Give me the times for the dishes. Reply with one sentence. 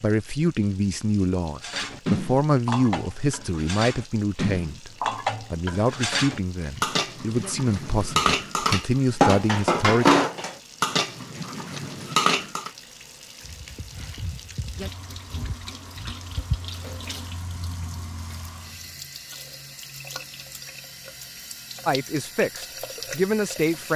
The dishes can be heard from 1.6 to 12.7 s.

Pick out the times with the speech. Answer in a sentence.
You can hear the speech from 0.0 to 10.2 s and from 21.9 to 23.9 s.